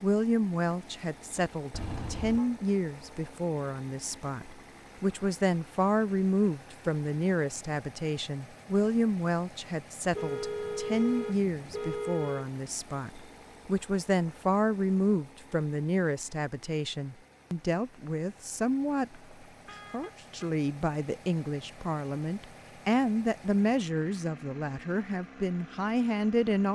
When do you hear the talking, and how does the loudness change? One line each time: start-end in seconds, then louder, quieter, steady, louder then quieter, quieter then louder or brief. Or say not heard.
0.0-26.6 steady.